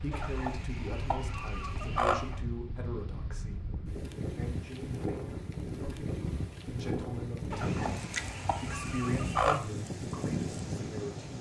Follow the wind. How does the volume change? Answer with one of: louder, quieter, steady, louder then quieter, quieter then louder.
louder.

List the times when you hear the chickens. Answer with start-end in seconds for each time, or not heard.
0.1-2.4, 7.5-9.6.